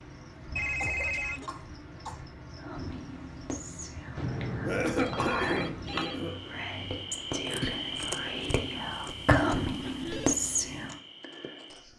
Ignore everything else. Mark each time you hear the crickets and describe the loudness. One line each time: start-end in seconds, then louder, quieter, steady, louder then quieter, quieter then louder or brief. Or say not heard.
0.0-11.9 louder then quieter.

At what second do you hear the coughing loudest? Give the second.
5 s.